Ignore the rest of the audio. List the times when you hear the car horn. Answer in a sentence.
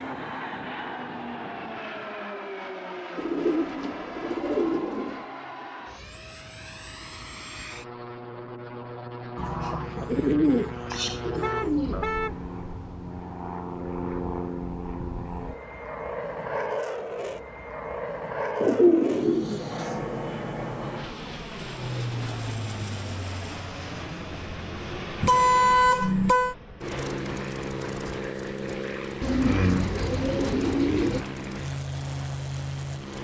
You can hear the car horn from 11.4 to 12.4 s and from 25.2 to 26.6 s.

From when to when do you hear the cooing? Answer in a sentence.
The cooing can be heard from 3.1 to 5.3 s, from 9.3 to 12.1 s, from 18.6 to 20.1 s and from 29.2 to 31.2 s.